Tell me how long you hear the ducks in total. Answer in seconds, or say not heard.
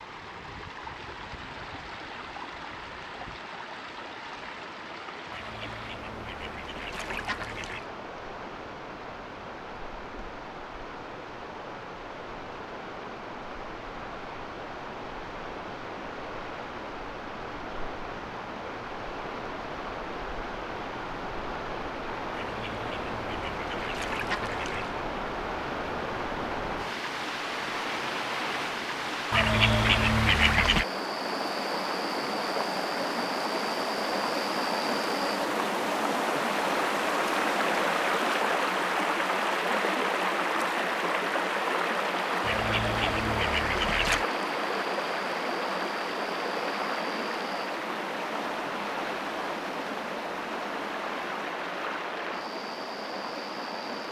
9 s.